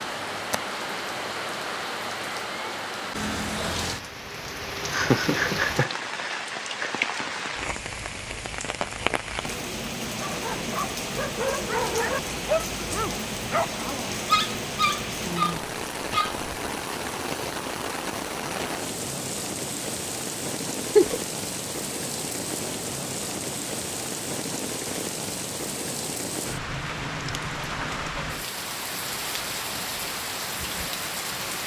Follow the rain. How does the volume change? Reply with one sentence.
The loudness of the rain stays about the same.